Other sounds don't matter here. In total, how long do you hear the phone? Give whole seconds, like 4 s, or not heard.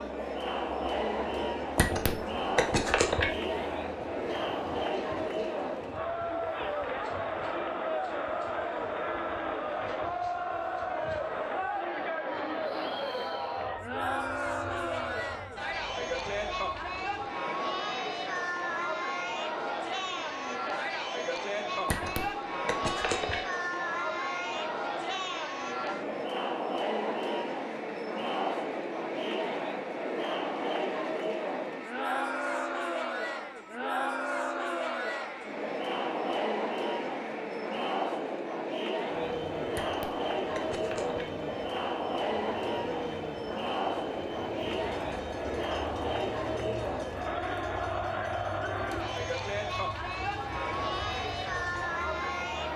5 s.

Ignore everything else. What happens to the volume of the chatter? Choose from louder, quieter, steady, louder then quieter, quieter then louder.
steady.